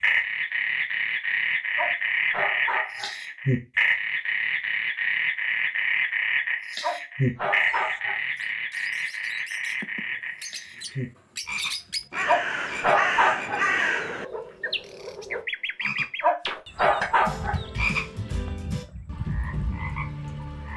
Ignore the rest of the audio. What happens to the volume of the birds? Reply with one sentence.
The loudness of the birds goes up, then down.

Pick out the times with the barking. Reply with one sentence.
You can hear the barking from 1.8 to 3.1 s, from 6.8 to 8.2 s, from 12.2 to 13.7 s and from 16.2 to 17.6 s.